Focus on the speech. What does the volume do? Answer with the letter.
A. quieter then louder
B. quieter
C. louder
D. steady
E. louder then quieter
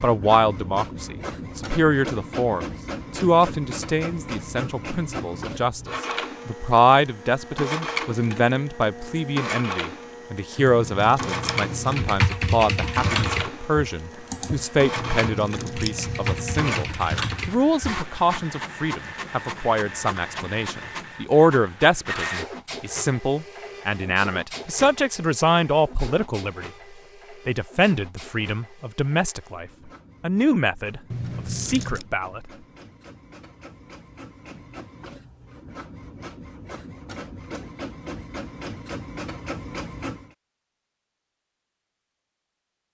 D.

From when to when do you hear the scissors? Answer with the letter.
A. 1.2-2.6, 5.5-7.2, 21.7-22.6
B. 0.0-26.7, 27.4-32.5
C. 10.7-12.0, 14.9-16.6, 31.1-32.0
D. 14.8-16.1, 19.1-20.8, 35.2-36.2
C.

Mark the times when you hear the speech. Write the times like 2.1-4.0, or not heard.
0.0-26.7, 27.4-32.5.